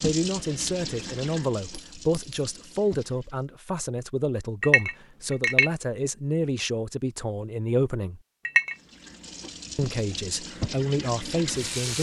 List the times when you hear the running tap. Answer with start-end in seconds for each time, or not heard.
0.0-3.5, 8.7-11.9.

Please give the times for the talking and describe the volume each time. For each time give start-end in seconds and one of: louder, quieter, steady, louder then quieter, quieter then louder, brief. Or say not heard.
0.0-8.2 steady
9.8-11.9 brief.